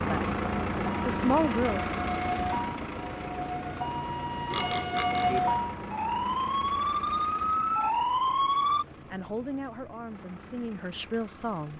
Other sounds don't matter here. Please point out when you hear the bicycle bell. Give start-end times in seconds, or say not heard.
4.5-5.4.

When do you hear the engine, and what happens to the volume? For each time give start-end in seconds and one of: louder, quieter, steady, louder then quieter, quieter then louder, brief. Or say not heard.
0.0-11.7 quieter.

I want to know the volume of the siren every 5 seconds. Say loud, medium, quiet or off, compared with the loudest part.
medium, loud, off.